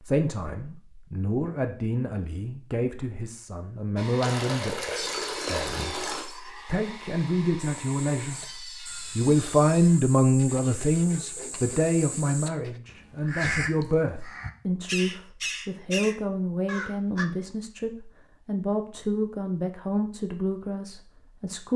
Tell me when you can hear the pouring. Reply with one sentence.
The pouring can be heard from 4.2 to 6.2 s.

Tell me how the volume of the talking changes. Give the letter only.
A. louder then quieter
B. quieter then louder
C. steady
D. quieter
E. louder
A.